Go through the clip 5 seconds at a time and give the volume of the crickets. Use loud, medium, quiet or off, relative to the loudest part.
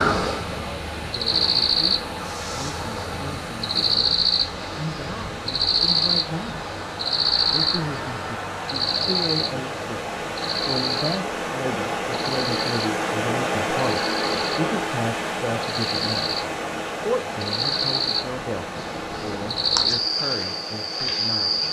loud, loud, medium, loud, loud.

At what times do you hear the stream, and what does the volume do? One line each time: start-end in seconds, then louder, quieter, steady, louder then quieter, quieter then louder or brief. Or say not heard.
0.0-21.6 louder then quieter.